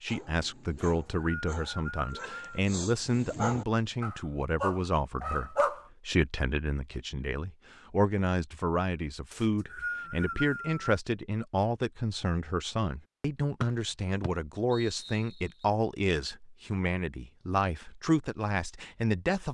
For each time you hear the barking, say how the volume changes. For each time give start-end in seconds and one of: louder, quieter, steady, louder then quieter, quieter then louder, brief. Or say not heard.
0.1-5.8 louder.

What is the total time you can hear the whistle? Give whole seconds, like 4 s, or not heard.
5 s.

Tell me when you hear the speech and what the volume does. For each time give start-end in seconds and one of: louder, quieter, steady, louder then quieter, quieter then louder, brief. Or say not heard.
0.0-19.4 steady.